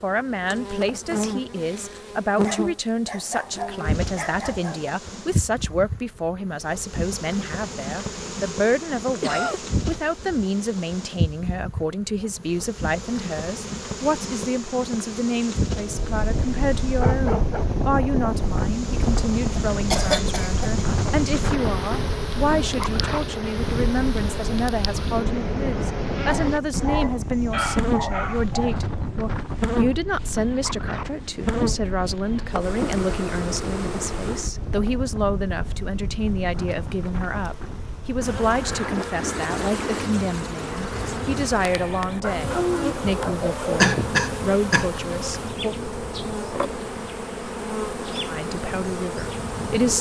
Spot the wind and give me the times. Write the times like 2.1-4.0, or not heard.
15.8-49.9.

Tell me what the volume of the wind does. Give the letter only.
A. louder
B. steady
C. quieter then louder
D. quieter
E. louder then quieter
D.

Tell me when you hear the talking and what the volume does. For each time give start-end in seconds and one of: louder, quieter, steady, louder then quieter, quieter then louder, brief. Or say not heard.
0.0-45.8 steady
48.2-49.9 brief.